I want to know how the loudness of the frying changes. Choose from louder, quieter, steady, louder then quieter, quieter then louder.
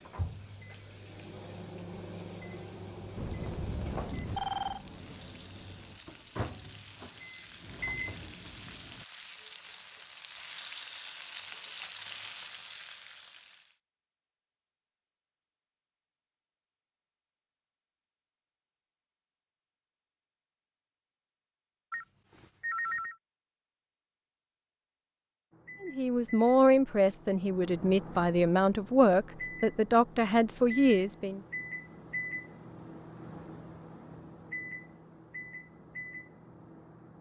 louder.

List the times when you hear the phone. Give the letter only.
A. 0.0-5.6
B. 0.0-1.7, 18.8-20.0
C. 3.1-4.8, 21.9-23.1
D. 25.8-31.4
C.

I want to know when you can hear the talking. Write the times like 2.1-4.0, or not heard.
25.8-31.4.